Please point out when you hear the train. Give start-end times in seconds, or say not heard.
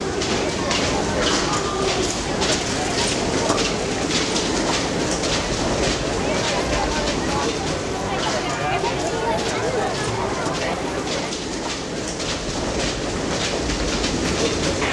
0.0-14.8.